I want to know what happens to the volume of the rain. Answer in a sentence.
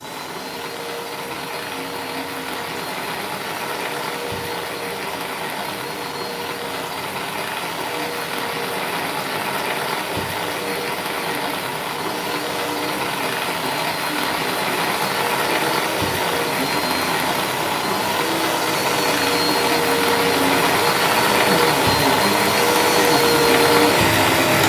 The loudness of the rain goes up.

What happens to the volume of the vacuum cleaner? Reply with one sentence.
The volume of the vacuum cleaner goes up.